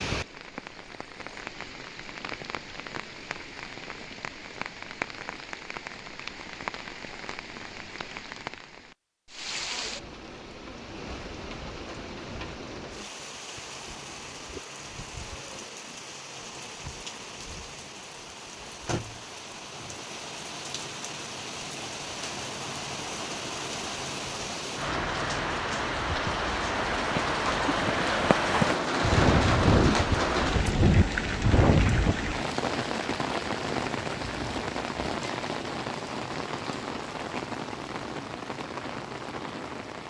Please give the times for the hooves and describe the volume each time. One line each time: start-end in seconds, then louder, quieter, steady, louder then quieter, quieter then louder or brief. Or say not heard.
26.1-32.1 louder.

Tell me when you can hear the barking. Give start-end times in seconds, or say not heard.
not heard.